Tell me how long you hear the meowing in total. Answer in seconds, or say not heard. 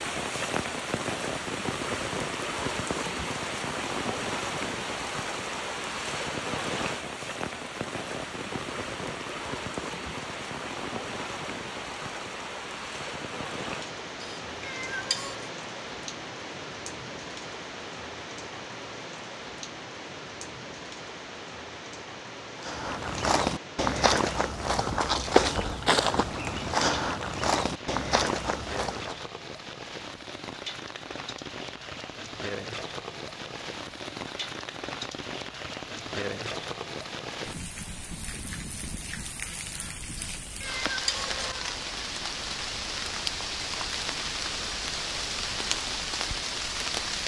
3 s.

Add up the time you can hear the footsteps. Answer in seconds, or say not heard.
7 s.